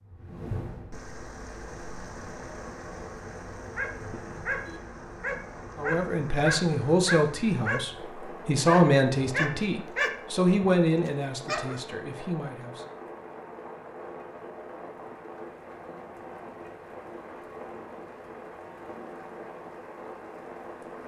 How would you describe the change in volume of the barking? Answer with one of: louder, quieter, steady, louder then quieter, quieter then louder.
louder then quieter.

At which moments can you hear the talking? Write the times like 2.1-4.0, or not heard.
5.8-12.8.